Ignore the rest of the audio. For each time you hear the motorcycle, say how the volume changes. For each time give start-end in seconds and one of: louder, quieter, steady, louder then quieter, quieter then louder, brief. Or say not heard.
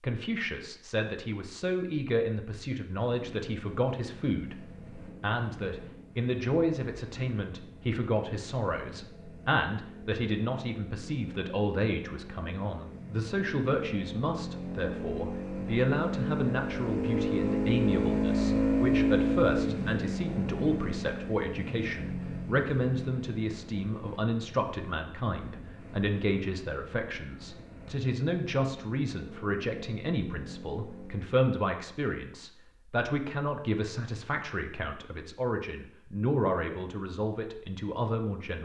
3.1-31.3 louder then quieter.